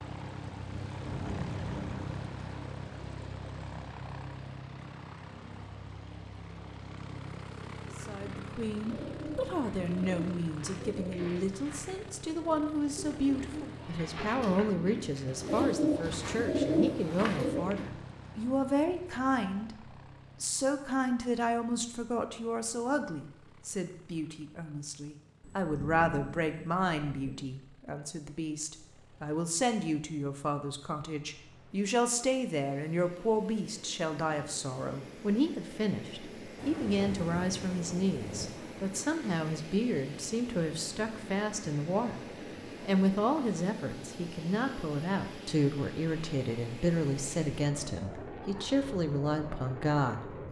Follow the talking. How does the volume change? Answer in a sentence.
The loudness of the talking stays about the same.